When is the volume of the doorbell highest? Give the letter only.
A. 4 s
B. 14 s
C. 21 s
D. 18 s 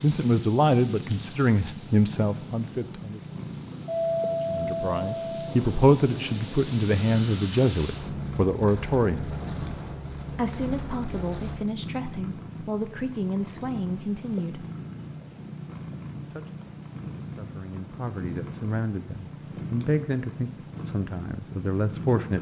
A.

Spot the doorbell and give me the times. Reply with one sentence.
You can hear the doorbell from 3.9 to 5.5 s.